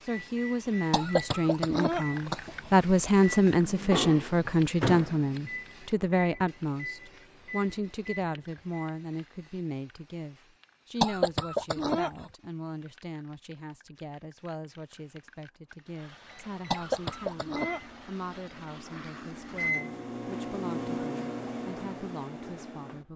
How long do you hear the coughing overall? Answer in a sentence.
The coughing can be heard for 4 seconds in total.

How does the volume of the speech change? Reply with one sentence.
The volume of the speech goes down.